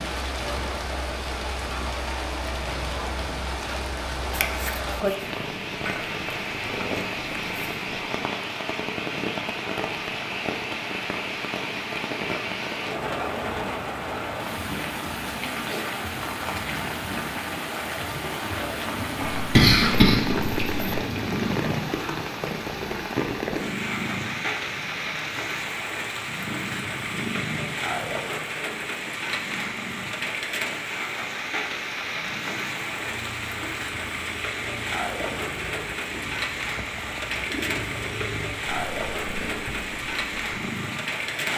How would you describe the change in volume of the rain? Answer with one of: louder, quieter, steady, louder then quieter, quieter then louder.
steady.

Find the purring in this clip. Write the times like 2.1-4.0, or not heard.
0.1-7.8, 18.9-41.5.